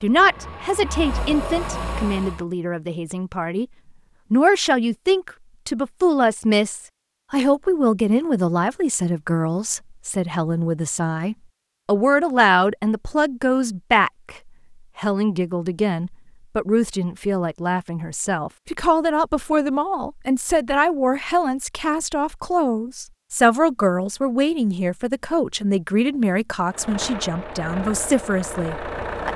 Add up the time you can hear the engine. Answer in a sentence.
The engine can be heard for 5 seconds in total.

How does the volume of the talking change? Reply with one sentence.
The loudness of the talking stays about the same.